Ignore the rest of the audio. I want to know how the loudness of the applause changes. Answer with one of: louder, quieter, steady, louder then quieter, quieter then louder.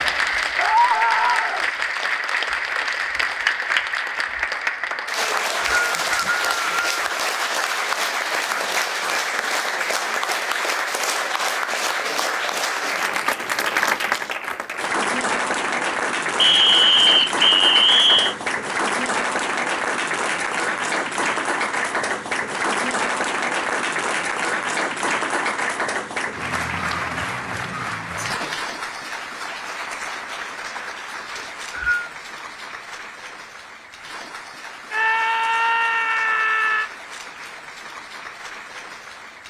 quieter.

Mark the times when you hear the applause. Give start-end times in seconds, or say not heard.
0.0-39.4.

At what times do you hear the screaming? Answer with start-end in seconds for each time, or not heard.
0.6-1.6, 34.9-36.9.